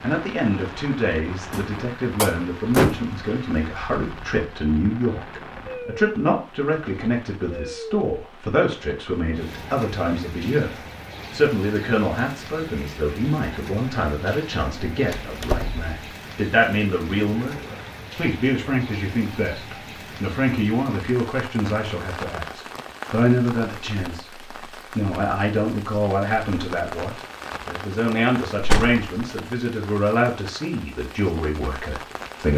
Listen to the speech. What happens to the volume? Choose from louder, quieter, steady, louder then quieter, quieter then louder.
steady.